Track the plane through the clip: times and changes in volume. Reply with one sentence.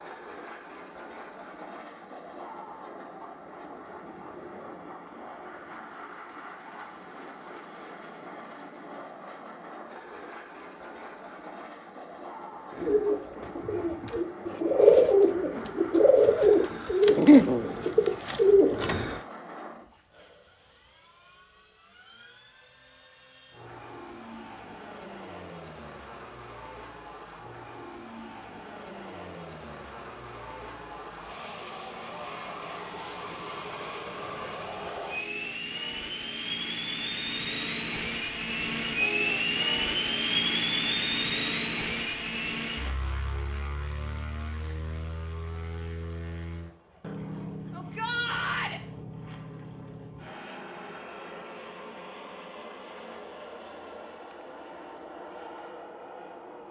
The plane can be heard from 0.0 to 56.6 s, getting louder then quieter.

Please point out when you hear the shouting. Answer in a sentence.
The shouting can be heard from 47.7 to 48.8 s.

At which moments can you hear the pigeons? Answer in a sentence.
The pigeons can be heard from 12.7 to 19.2 s.